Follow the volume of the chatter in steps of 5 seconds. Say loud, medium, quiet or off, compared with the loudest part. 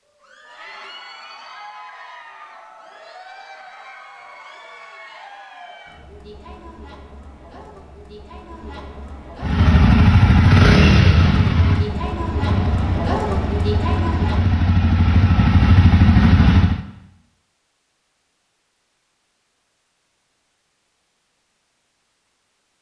quiet, quiet, loud, off, off.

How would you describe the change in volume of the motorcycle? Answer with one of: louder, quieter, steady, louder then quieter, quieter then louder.
quieter then louder.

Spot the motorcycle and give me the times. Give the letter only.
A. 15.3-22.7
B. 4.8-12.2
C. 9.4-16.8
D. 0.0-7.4
C.